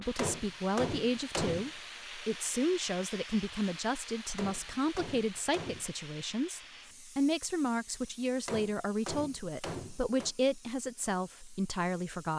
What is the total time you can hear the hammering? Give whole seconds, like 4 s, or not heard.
5 s.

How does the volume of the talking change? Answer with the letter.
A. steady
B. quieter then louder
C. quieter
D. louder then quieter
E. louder
A.